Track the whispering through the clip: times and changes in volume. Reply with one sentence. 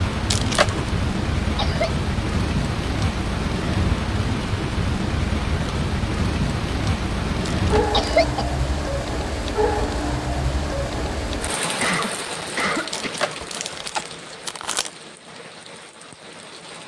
The whispering can't be heard in this clip.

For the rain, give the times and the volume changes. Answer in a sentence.
You can hear the rain from 0.0 to 16.8 s, getting quieter.